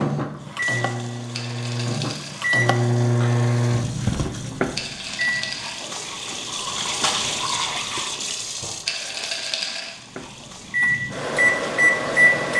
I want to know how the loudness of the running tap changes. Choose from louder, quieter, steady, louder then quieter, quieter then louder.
louder then quieter.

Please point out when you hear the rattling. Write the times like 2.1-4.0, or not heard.
1.3-2.4, 4.8-5.8, 8.8-9.9.